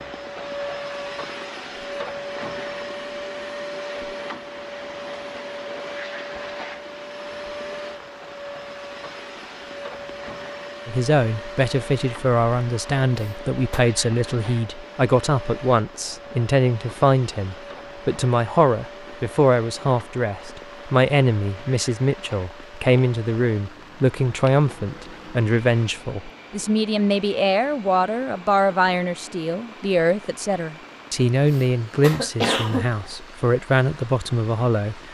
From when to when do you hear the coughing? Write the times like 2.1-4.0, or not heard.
13.2-13.8, 31.5-33.1.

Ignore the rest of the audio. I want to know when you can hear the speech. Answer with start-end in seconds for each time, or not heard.
10.8-35.0.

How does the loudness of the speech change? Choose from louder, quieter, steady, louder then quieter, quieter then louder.
steady.